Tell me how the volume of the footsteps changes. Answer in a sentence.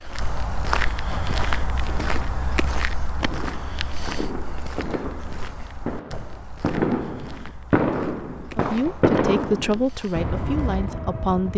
The volume of the footsteps goes down.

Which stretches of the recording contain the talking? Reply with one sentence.
The talking can be heard from 8.6 to 11.5 s.